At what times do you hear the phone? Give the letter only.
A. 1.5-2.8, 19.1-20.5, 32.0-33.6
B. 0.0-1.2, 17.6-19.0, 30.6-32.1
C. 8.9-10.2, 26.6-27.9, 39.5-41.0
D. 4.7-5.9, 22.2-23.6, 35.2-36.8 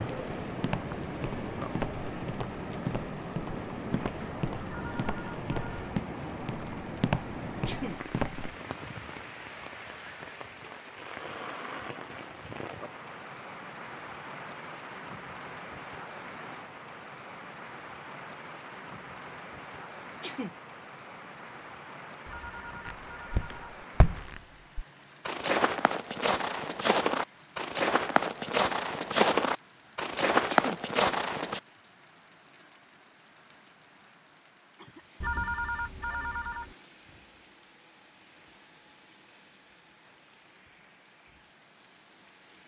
D.